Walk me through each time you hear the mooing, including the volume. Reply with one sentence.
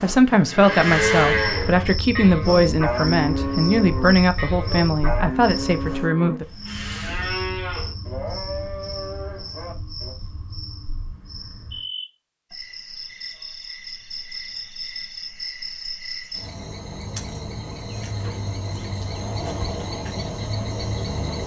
The mooing can be heard from 0.2 to 10.2 s, getting quieter.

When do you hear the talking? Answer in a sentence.
The talking can be heard from 0.0 to 6.5 s.